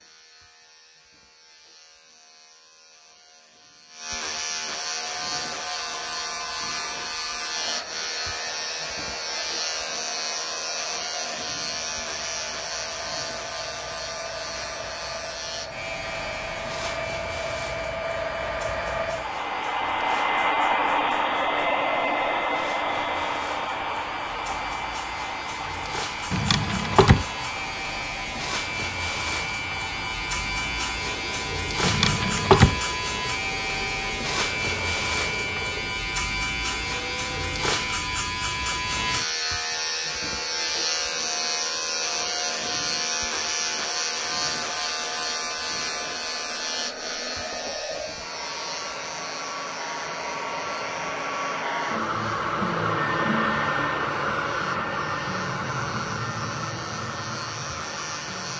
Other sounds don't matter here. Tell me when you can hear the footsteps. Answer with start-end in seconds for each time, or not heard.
not heard.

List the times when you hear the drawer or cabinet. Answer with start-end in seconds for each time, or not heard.
26.3-27.2, 31.8-32.8.